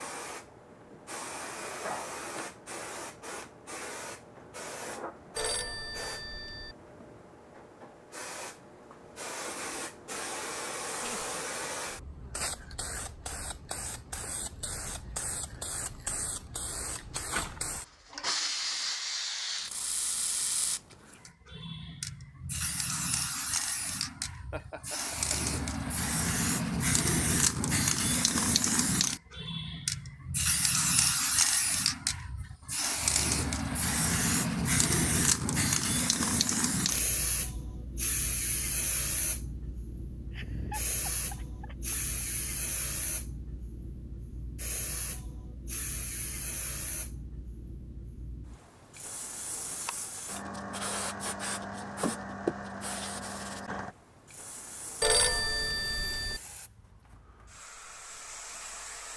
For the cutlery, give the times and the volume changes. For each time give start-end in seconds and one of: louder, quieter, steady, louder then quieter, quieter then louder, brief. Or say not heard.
not heard.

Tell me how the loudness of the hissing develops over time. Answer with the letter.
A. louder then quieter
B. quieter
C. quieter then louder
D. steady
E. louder
A.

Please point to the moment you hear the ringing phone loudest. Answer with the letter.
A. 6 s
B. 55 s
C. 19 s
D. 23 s
B.